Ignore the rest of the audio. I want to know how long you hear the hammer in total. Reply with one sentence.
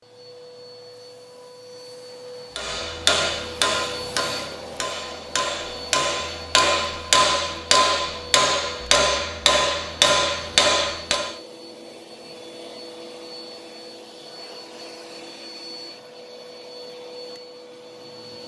You can hear the hammer for 9 seconds altogether.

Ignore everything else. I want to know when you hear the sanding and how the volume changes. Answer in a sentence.
The sanding can't be heard in this clip.